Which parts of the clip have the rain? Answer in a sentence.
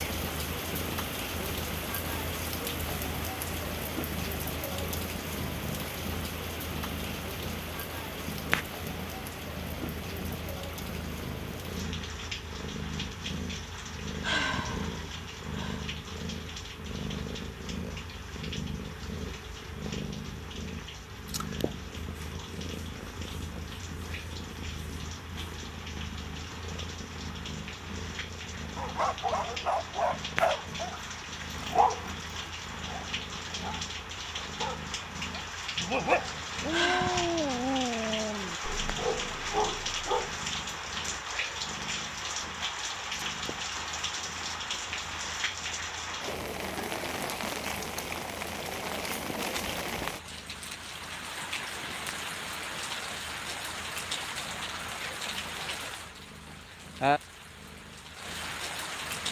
The rain can be heard from 0.0 to 59.2 s.